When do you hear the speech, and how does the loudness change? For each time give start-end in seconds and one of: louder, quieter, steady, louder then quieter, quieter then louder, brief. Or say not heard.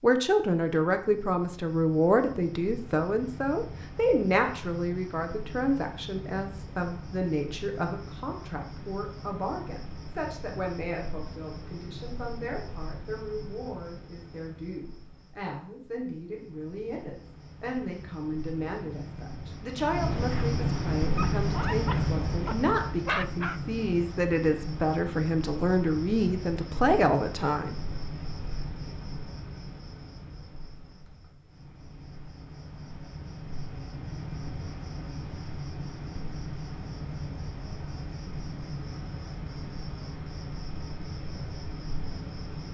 0.0-27.8 quieter then louder.